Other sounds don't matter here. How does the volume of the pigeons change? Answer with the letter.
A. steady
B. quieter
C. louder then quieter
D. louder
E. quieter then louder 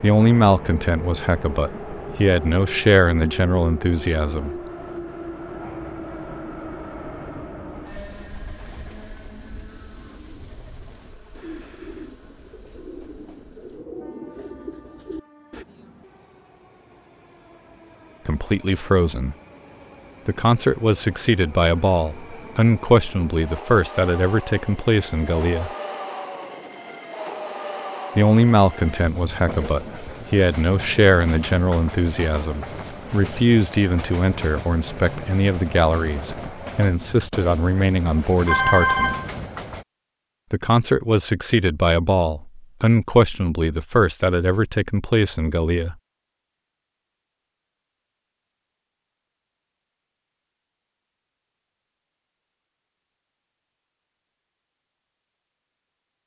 D.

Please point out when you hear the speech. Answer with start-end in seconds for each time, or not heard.
0.0-4.5, 18.2-19.4, 20.2-25.7, 28.1-39.1, 40.5-46.0.